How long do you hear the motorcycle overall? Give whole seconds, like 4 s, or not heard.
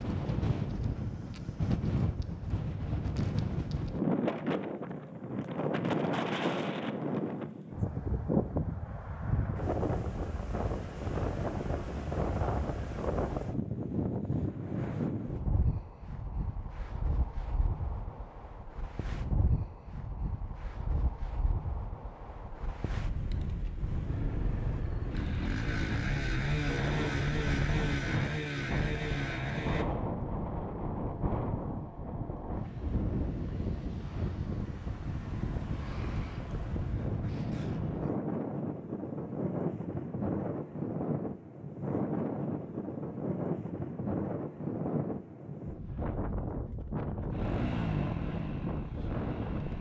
8 s.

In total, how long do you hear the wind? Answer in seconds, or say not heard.
50 s.